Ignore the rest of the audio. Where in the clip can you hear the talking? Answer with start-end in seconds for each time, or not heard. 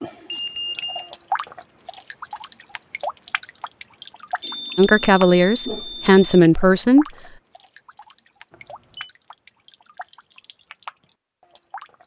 4.8-7.0.